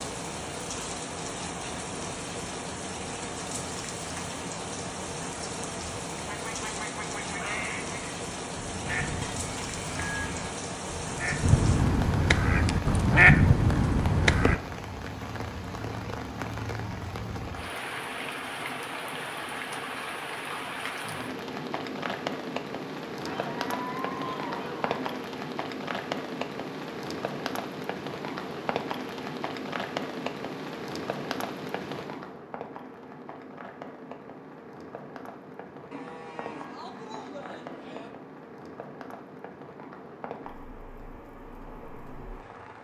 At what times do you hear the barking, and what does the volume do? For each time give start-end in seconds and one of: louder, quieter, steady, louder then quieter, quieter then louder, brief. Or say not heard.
not heard.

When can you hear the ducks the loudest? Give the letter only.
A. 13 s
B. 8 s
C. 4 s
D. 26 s
A.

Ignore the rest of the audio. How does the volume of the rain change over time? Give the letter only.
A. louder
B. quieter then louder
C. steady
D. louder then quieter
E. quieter
E.